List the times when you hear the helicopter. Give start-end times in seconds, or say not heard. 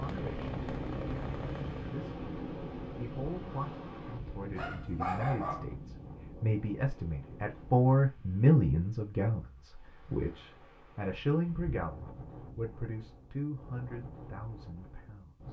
0.0-2.0.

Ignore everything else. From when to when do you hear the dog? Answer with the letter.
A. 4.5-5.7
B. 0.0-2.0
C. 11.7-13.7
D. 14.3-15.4
A.